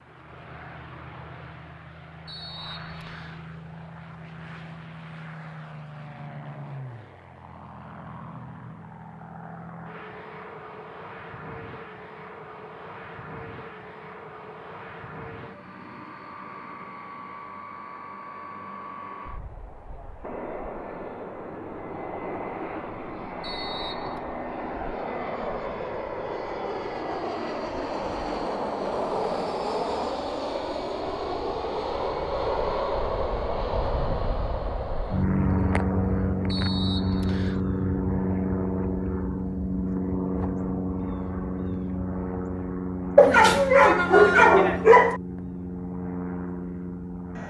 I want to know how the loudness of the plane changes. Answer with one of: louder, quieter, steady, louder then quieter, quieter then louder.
louder.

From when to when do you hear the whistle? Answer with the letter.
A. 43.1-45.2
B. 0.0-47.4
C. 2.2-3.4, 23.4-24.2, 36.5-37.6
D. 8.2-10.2
C.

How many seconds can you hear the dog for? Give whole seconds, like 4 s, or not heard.
2 s.